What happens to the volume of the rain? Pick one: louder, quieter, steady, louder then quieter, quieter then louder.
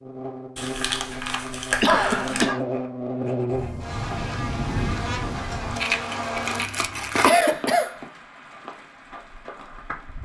quieter.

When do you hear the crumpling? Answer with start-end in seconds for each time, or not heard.
0.6-2.5, 5.7-7.3.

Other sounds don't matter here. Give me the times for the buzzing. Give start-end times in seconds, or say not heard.
0.0-6.7.